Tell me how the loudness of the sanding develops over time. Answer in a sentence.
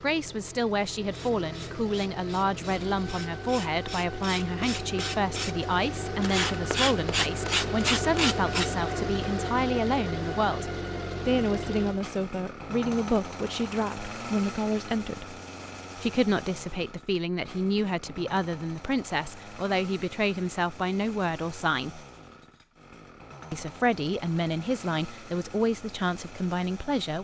The volume of the sanding goes up.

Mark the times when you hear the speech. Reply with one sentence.
The speech can be heard from 0.0 to 15.3 s, from 15.9 to 22.1 s and from 23.5 to 27.1 s.